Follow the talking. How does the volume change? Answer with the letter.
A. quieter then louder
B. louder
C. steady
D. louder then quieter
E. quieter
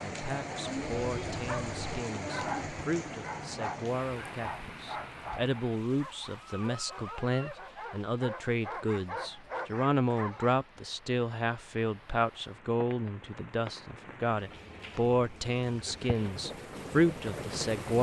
B.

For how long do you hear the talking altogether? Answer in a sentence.
You can hear the talking for 18 seconds altogether.